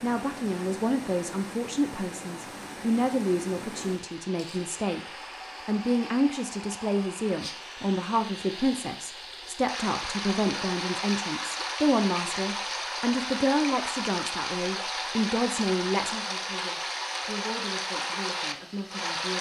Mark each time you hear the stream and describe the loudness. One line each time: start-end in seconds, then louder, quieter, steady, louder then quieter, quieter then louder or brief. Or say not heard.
0.0-19.3 louder.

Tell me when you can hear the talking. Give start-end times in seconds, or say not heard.
0.0-19.3.